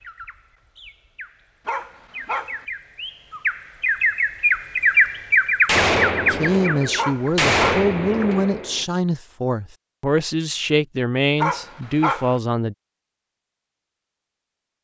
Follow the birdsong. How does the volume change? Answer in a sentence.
The volume of the birdsong goes up.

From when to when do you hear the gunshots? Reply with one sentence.
The gunshots can be heard from 5.7 to 8.8 s.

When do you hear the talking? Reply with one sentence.
You can hear the talking from 6.3 to 12.8 s.